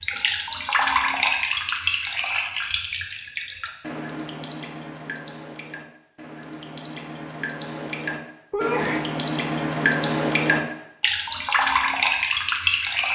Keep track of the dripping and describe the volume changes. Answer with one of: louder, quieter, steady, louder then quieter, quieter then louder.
quieter then louder.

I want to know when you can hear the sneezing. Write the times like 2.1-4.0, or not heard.
8.5-9.1.